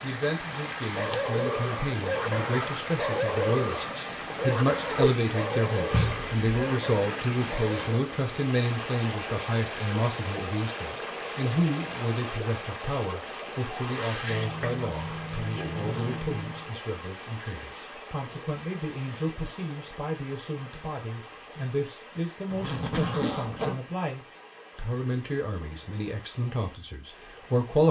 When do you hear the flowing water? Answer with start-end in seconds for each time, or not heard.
0.0-27.8.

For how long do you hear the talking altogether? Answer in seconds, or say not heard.
28 s.